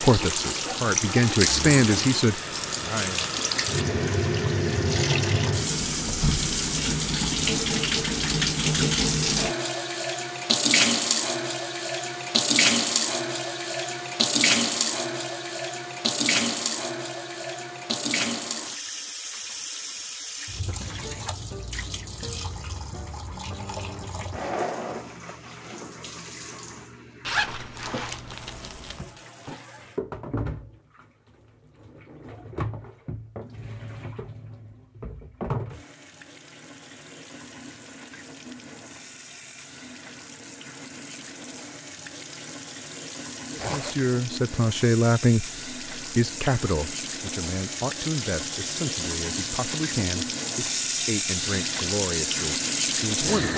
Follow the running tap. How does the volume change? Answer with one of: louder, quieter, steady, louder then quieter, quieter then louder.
quieter then louder.